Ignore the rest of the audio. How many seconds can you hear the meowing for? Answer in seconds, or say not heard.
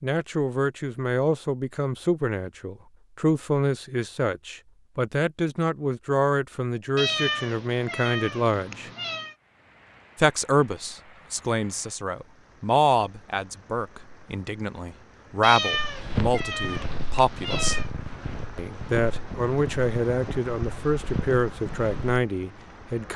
5 s.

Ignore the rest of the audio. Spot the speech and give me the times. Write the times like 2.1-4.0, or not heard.
0.0-8.9, 10.2-17.8, 18.6-23.1.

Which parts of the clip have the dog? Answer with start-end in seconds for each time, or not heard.
not heard.